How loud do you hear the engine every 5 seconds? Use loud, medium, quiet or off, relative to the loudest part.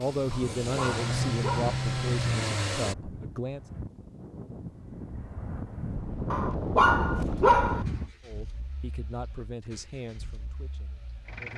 loud, quiet, quiet.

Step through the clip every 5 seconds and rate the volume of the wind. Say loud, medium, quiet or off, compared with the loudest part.
medium, loud, off.